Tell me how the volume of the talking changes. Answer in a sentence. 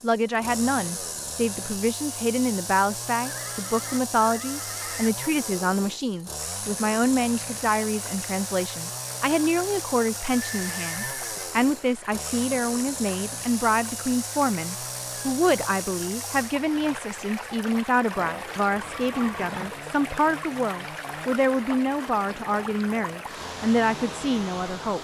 The loudness of the talking stays about the same.